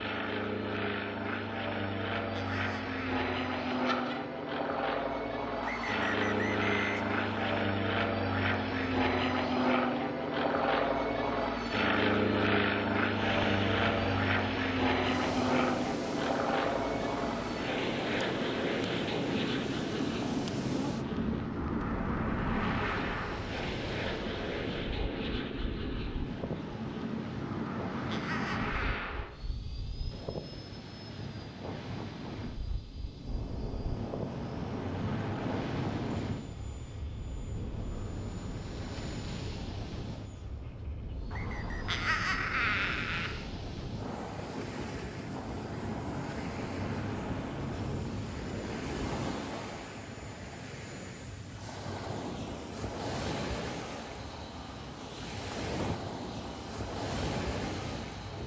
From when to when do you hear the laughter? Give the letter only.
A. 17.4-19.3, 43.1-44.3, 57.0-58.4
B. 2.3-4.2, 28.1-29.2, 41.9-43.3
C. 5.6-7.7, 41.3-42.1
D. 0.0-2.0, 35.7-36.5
B.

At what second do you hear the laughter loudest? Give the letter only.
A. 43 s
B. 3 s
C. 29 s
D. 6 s
A.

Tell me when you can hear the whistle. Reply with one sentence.
You can hear the whistle from 5.6 to 7.7 s and from 41.3 to 42.1 s.